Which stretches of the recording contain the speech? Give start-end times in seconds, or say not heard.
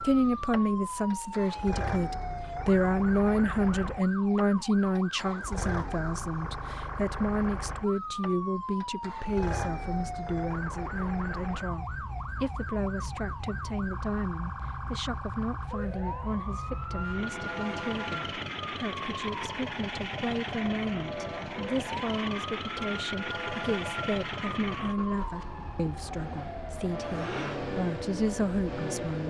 0.0-29.2.